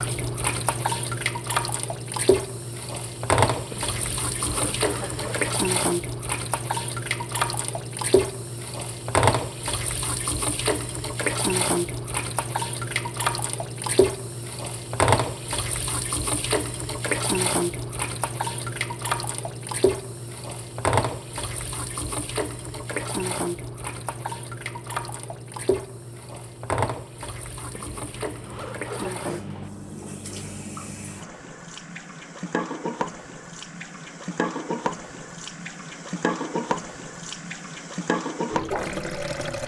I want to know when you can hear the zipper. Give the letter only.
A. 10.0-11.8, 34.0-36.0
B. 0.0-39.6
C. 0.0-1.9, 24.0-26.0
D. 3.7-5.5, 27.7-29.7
D.